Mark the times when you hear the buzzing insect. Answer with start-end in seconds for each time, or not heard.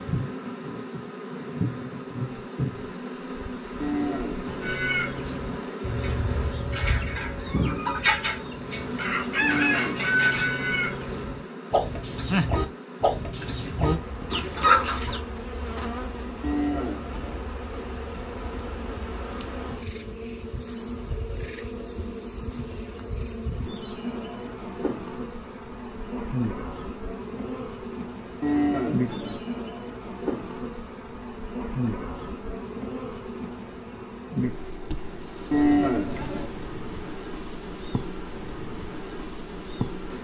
0.0-40.1.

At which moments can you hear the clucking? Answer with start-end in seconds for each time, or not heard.
4.6-15.2.